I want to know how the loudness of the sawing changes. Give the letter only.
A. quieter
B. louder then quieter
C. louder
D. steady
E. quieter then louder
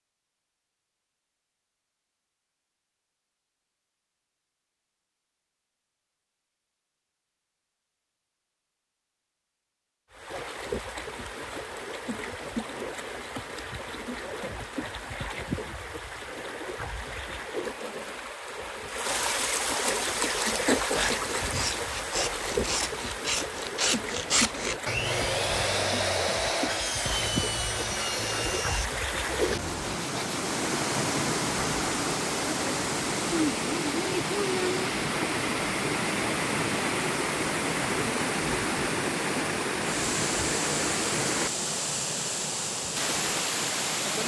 B.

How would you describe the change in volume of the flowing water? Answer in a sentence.
The loudness of the flowing water goes up.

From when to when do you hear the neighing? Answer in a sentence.
The neighing can't be heard in this clip.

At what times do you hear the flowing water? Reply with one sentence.
The flowing water can be heard from 10.1 to 44.2 s.